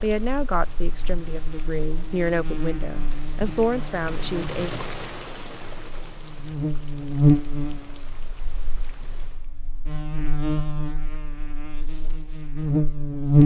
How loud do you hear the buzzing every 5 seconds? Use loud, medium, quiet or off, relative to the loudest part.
quiet, loud, loud.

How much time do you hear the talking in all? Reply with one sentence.
The talking can be heard for 5 seconds in total.